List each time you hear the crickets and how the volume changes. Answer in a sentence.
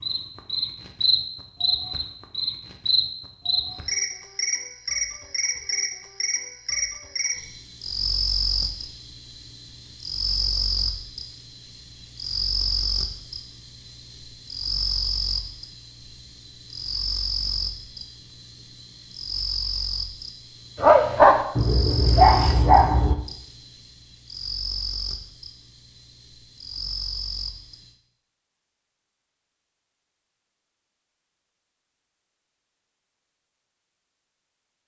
The crickets can be heard from 0.0 to 27.9 s, getting quieter.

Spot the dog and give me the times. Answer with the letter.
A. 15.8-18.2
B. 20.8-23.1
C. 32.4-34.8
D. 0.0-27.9
B.